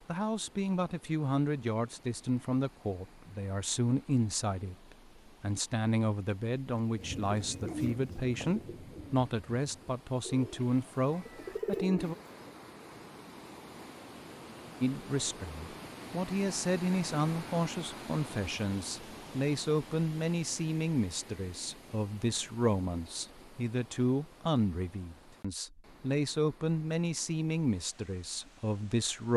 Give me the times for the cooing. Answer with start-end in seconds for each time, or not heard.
7.0-12.6.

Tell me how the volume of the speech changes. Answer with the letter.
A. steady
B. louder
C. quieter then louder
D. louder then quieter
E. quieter
A.